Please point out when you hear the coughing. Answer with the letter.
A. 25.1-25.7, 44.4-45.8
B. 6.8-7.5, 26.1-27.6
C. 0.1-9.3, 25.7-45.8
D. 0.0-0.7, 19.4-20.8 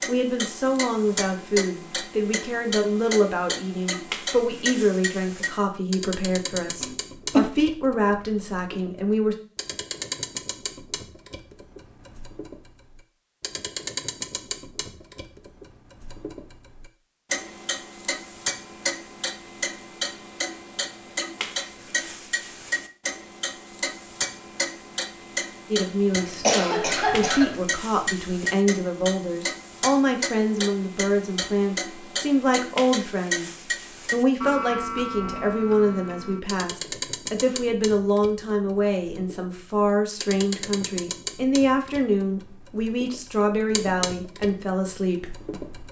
B.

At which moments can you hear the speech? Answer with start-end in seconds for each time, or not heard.
0.1-9.3, 25.7-45.8.